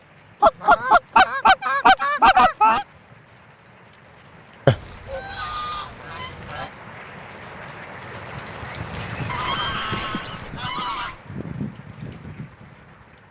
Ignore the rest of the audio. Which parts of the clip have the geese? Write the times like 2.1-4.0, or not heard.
0.4-2.9, 4.7-6.7, 9.2-11.2.